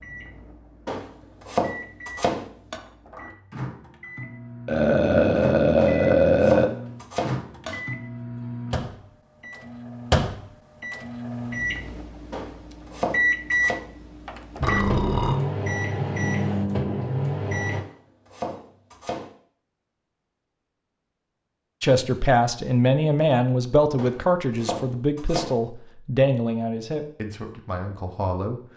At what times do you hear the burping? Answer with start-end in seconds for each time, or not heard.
4.7-6.7, 14.6-15.3.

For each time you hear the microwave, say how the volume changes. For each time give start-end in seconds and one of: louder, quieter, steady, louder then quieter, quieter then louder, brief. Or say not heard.
0.0-17.9 louder.